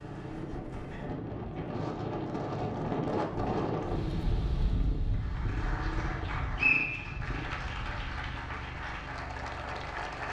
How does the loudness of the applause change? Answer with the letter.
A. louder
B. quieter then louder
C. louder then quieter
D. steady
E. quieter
D.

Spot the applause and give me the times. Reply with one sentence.
The applause can be heard from 5.1 to 10.2 s.